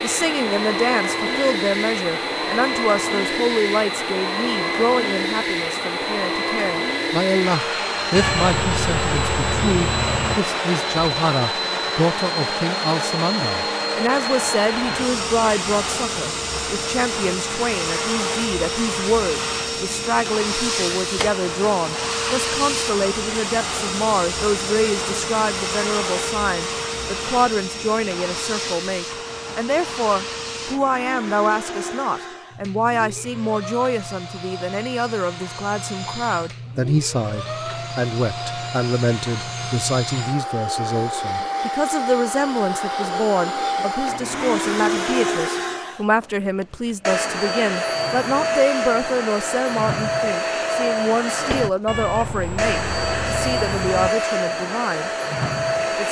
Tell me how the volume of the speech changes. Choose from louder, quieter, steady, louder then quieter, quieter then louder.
steady.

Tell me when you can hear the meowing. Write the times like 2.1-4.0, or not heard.
8.2-10.4, 51.9-54.1.